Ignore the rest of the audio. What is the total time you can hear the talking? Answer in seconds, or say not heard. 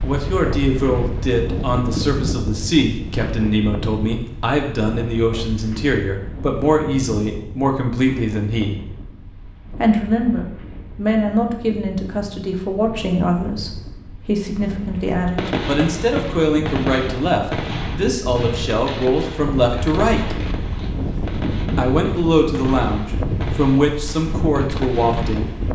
23 s.